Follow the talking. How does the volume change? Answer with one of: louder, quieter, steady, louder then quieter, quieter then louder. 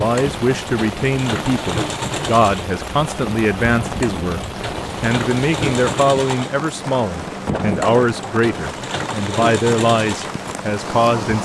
steady.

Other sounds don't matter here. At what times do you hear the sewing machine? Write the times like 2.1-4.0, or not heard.
0.0-11.4.